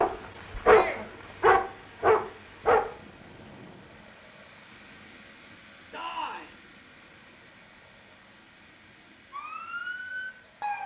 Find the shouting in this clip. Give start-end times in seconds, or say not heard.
0.6-1.1, 5.9-6.5.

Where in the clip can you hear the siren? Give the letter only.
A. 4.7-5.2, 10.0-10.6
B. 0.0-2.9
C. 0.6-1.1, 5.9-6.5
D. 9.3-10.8
D.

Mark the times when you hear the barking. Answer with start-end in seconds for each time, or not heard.
0.0-2.9.